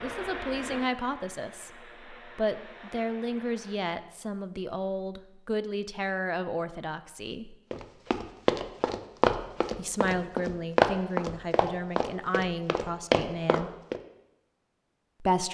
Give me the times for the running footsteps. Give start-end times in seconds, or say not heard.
7.7-14.0.